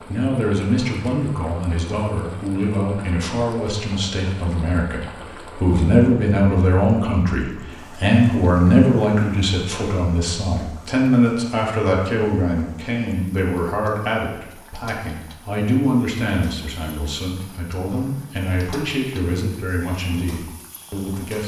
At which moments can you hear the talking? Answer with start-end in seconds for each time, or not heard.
0.0-21.4.